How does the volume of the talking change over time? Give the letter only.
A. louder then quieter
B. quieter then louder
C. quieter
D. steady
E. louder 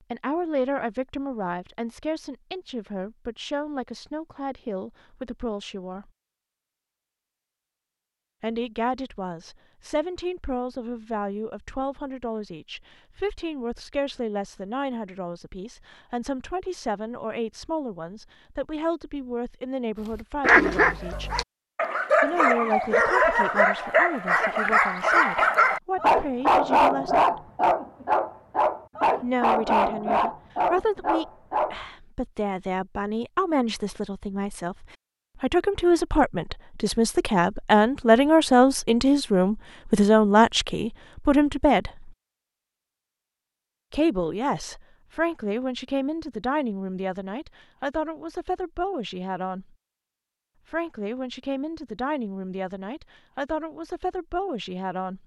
A.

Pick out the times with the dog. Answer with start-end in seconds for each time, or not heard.
20.1-31.8.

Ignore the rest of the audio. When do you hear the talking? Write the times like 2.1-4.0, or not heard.
0.1-6.1, 8.4-21.3, 22.2-27.5, 29.2-42.1, 43.9-49.8, 50.7-55.2.